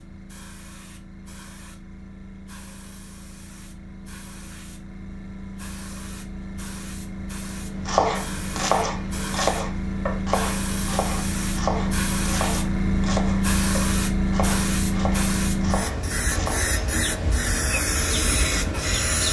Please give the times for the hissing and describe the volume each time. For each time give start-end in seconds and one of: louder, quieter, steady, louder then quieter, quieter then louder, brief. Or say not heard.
0.0-19.2 louder.